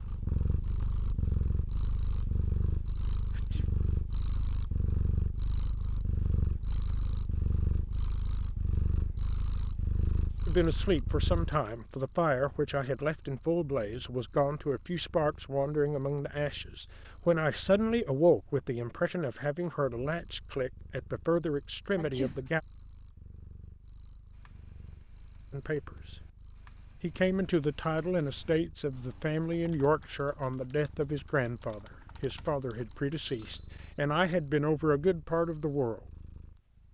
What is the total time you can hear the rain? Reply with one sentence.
You can't hear the rain here.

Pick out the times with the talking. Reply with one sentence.
You can hear the talking from 10.4 to 22.6 s, from 25.5 to 26.1 s and from 27.0 to 36.0 s.